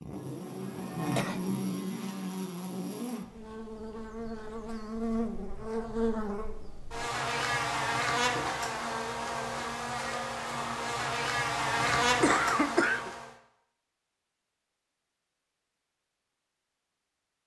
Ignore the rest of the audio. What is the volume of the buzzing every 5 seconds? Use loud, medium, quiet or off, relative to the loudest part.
medium, loud, loud, off.